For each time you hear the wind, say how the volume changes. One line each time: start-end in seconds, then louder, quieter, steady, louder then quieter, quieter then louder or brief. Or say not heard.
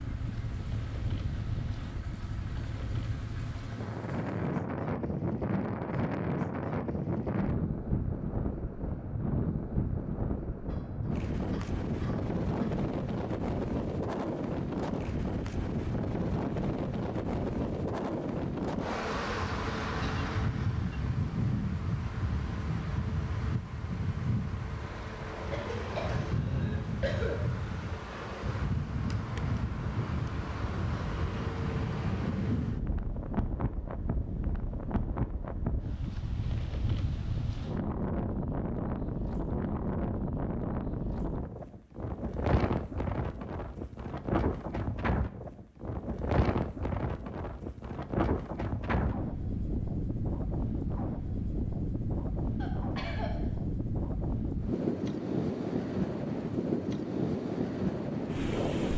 0.0-58.9 steady.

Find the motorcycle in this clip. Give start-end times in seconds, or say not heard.
0.0-4.6.